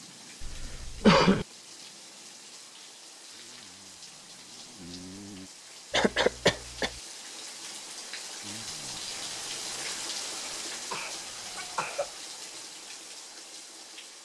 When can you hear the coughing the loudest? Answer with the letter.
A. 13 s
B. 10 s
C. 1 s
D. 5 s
C.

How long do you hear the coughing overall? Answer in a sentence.
The coughing can be heard for 4 seconds in total.